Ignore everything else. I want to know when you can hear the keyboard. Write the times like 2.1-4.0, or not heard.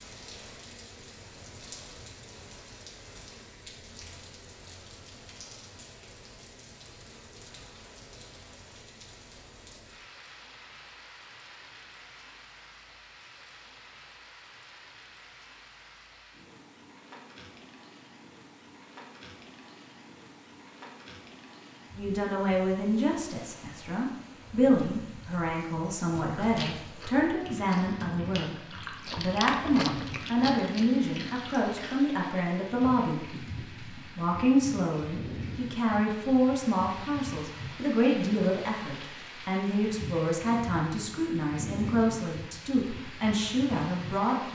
not heard.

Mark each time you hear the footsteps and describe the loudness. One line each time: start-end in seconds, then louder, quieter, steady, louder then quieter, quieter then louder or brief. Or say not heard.
not heard.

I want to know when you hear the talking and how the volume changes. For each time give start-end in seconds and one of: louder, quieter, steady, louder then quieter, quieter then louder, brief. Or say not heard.
21.9-44.5 steady.